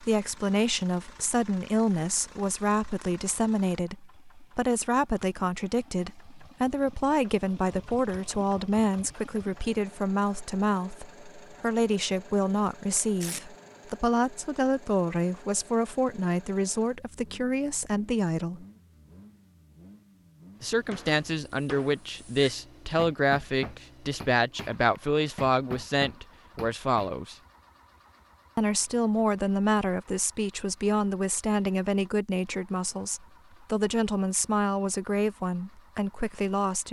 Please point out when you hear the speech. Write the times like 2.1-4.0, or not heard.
0.0-18.6, 20.6-27.4, 28.6-36.8.